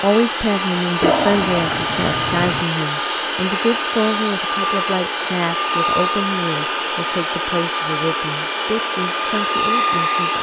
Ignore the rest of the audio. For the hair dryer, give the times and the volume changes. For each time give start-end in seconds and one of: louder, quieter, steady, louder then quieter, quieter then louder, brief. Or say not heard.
0.0-10.3 steady.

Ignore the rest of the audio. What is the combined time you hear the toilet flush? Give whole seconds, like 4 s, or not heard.
2 s.